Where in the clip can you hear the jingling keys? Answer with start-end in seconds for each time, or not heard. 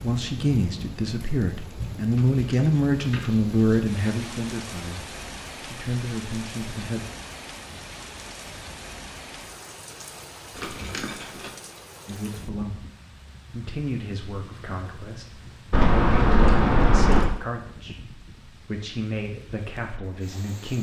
2.1-3.5, 10.6-11.5, 15.7-17.3.